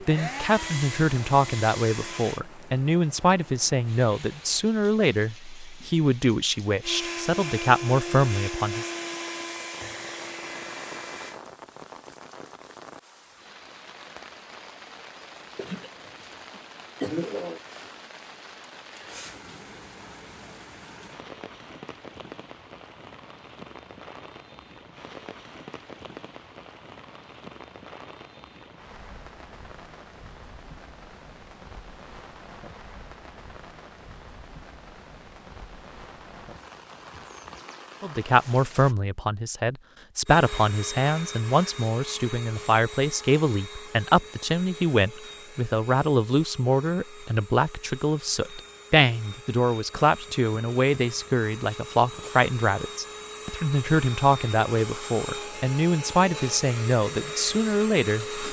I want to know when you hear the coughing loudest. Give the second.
17 s.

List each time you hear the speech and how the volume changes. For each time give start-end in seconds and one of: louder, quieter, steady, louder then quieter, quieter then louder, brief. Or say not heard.
0.0-8.9 steady
38.0-58.4 steady.